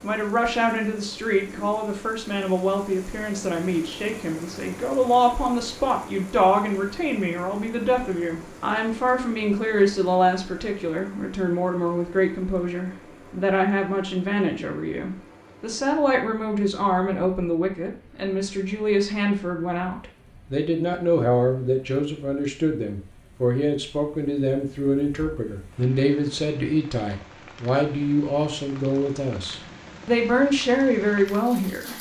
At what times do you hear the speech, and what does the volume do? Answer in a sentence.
The speech can be heard from 0.0 to 31.9 s, at a steady volume.